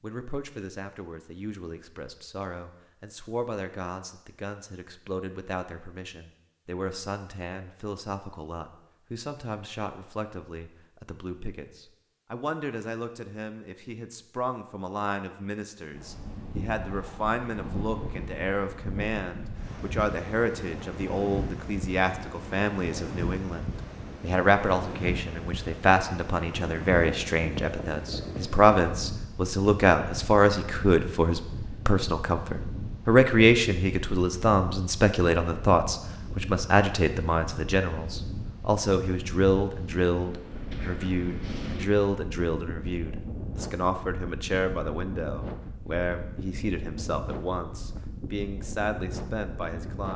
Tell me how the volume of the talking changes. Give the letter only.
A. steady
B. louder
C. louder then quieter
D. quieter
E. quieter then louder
C.